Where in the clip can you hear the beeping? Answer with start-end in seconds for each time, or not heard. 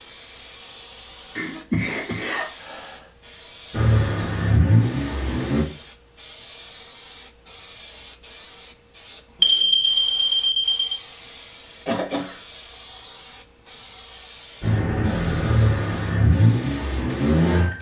9.4-10.8.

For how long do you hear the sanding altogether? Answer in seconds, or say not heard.
not heard.